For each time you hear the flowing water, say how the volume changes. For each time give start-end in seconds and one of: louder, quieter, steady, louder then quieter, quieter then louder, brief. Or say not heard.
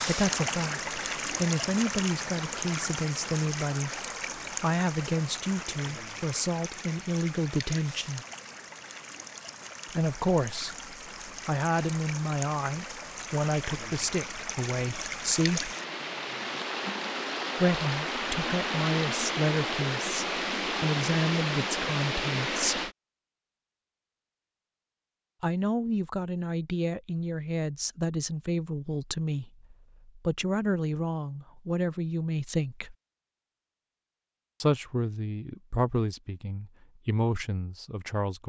0.0-22.9 quieter then louder.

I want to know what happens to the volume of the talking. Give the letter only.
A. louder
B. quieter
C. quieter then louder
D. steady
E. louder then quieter
D.